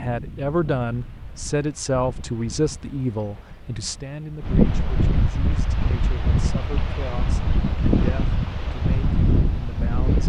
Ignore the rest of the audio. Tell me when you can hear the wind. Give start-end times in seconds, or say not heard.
0.0-10.2.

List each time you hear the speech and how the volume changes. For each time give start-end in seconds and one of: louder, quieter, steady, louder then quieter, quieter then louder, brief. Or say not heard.
0.0-10.2 quieter.